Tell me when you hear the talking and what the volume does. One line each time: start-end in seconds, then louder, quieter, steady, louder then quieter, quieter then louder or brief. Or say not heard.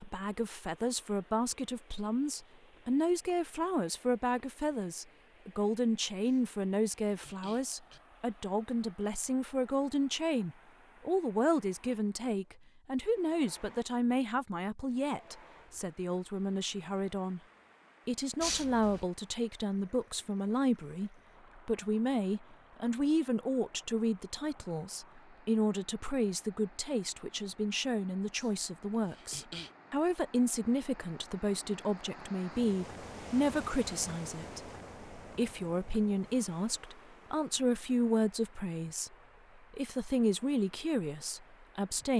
0.0-17.4 steady
18.1-42.1 steady.